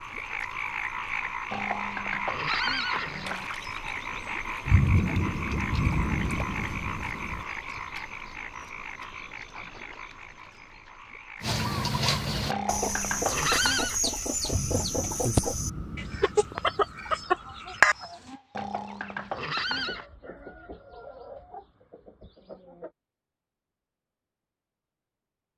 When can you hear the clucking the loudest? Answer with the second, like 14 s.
18 s.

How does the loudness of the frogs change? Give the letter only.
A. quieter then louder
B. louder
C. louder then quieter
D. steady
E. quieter
E.